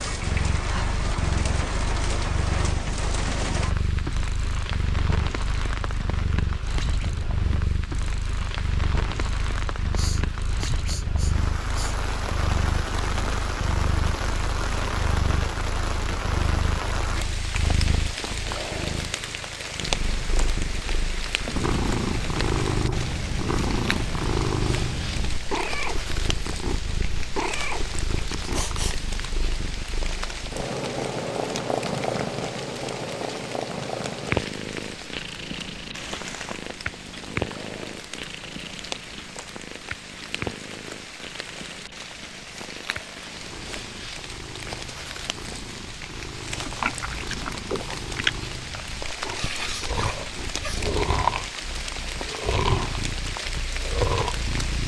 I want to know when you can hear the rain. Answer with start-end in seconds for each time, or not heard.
0.0-54.8.